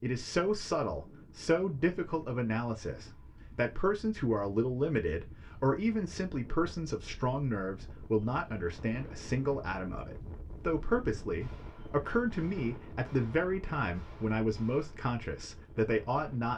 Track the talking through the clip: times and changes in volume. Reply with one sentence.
You can hear the talking from 0.0 to 16.5 s, at a steady volume.